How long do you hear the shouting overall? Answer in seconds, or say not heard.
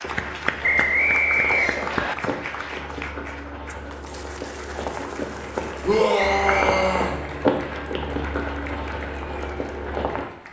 2 s.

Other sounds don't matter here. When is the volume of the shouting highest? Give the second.
6 s.